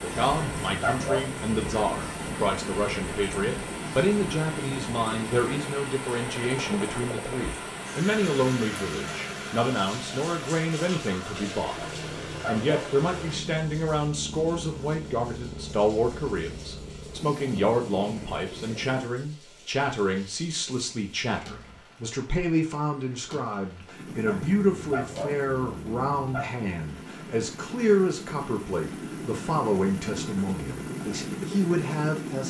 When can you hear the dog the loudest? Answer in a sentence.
The loudest moment of the dog is at 1 second.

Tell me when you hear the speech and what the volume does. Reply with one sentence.
The speech can be heard from 0.0 to 32.4 s, at a steady volume.